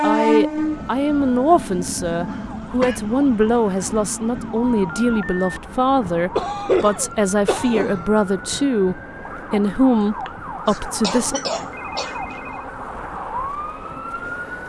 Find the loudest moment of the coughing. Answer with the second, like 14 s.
7 s.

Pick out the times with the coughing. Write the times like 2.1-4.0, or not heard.
2.3-3.0, 6.3-8.1, 10.0-12.5.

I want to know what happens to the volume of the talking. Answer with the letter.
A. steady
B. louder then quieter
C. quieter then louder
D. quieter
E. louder
A.